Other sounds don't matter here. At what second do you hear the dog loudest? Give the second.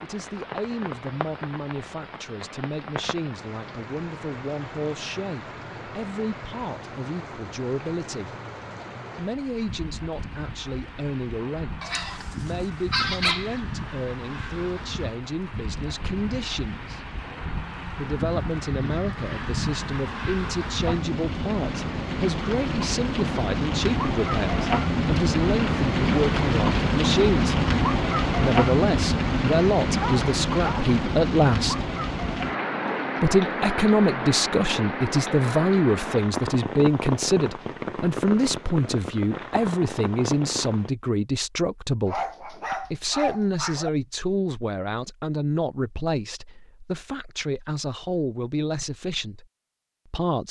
13 s.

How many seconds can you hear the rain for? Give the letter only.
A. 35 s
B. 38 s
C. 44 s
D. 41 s
D.